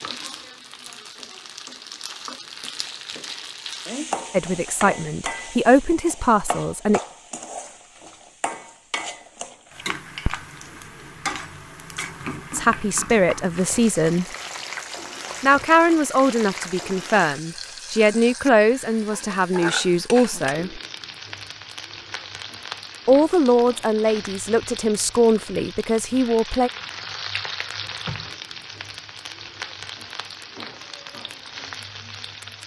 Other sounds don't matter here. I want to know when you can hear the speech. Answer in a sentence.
You can hear the speech from 4.3 to 7.0 s, from 12.5 to 14.2 s, from 15.4 to 20.8 s and from 23.1 to 26.7 s.